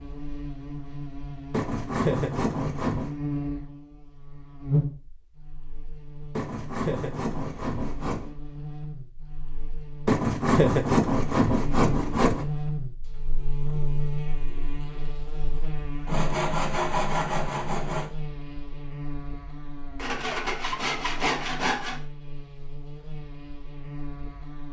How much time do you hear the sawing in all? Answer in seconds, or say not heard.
10 s.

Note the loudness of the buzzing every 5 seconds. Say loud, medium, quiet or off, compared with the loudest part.
loud, medium, loud, medium, medium.